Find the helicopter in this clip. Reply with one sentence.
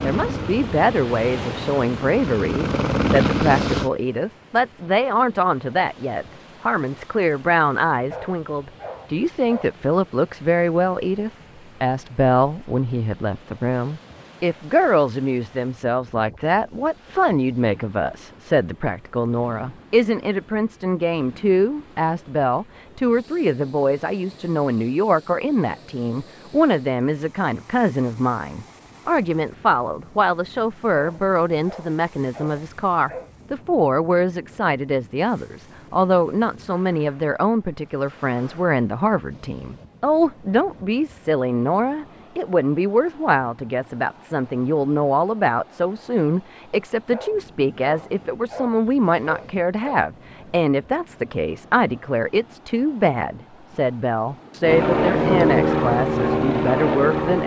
The helicopter can be heard from 0.0 to 3.9 s and from 54.6 to 57.4 s.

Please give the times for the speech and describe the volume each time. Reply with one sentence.
The speech can be heard from 0.0 to 57.4 s, at a steady volume.